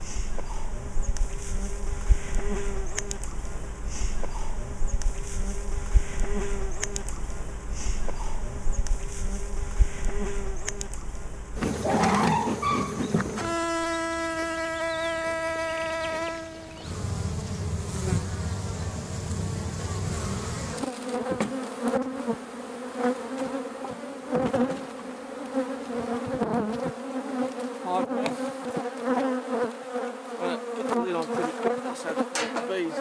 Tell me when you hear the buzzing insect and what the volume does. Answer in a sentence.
The buzzing insect can be heard from 0.0 to 32.9 s, getting louder.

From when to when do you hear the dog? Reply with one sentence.
The dog can be heard from 11.8 to 13.2 s.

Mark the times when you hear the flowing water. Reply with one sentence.
The flowing water can't be heard in this clip.